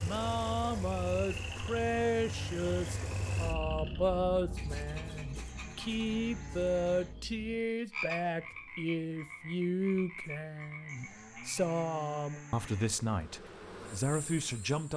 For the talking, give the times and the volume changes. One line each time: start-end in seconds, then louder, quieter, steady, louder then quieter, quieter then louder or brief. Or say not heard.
0.0-14.9 steady.